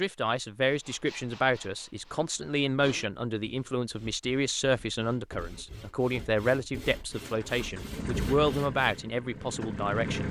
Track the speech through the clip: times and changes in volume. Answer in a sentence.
You can hear the speech from 0.0 to 10.2 s, at a steady volume.